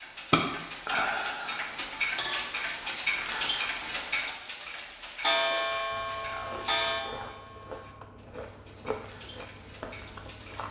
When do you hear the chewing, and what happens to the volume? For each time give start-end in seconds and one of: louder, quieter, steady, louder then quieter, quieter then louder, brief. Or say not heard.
5.7-10.6 steady.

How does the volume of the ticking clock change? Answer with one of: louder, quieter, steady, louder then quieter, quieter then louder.
quieter.